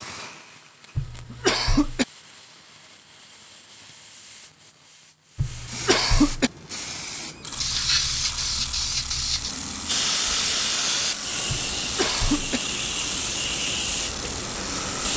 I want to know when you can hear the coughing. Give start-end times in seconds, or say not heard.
0.9-2.0, 5.3-6.5, 11.4-12.6.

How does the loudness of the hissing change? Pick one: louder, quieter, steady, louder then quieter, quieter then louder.
louder.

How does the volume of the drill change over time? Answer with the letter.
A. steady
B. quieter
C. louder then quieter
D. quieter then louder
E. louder
A.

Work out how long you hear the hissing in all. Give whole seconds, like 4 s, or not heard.
15 s.